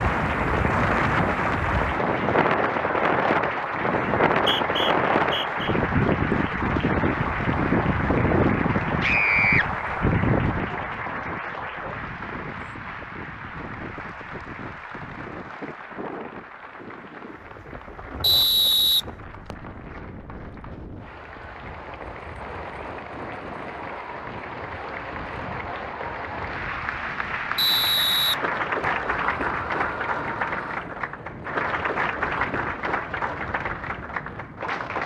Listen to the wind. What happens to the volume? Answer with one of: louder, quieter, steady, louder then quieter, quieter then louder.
quieter.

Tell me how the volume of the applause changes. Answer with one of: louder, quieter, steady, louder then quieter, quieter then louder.
quieter then louder.